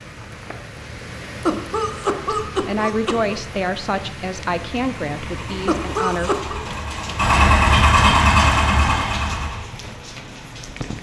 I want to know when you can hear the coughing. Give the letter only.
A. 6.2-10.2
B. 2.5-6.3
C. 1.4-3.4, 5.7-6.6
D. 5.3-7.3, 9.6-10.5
C.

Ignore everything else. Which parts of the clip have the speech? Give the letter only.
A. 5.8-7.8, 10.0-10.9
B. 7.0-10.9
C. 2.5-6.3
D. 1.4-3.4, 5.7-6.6
C.